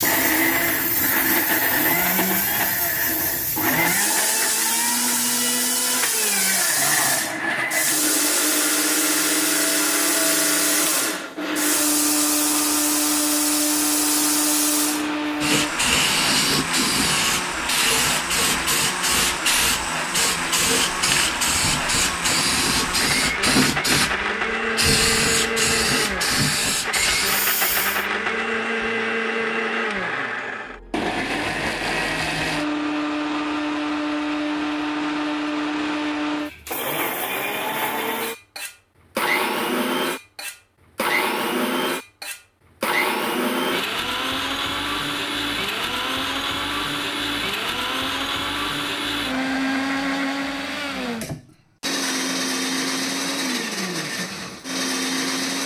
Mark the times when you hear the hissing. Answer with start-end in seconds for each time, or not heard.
0.0-28.1.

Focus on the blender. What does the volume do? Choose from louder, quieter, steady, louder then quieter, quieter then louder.
steady.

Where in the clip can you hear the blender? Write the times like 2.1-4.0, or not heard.
0.0-55.6.